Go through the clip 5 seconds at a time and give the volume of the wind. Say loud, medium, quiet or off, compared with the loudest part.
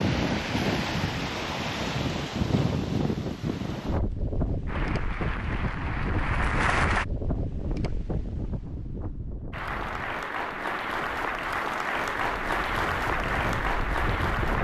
loud, medium, medium.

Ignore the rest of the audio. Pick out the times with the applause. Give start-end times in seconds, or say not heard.
4.7-7.0, 9.5-14.6.